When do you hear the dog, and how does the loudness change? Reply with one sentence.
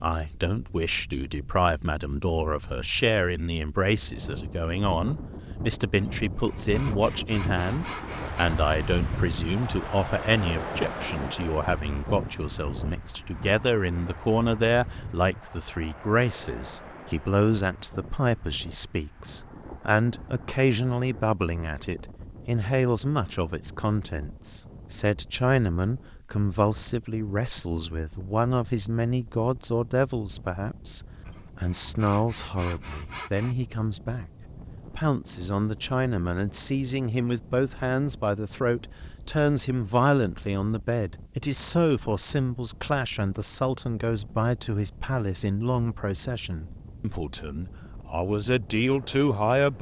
The dog can't be heard in this clip.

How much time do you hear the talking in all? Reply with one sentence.
You can hear the talking for 49 seconds altogether.